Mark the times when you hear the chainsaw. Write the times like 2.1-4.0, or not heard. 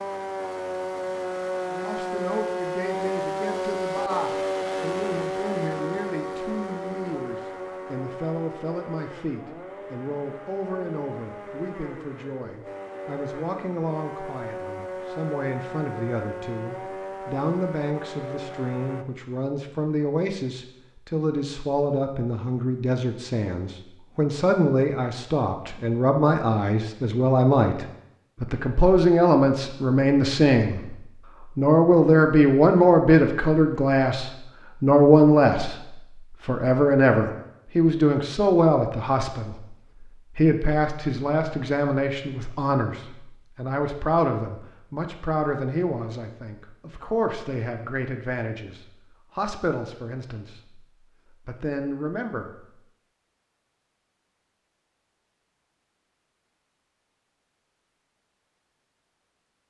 0.0-19.1.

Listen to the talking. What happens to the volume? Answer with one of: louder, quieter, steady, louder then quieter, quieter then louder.
louder then quieter.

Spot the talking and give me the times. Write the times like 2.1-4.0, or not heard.
1.7-52.6.